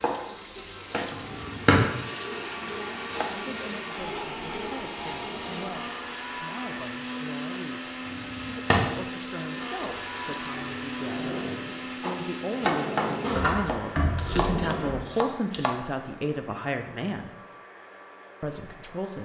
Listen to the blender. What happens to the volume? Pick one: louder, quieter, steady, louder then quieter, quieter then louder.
quieter.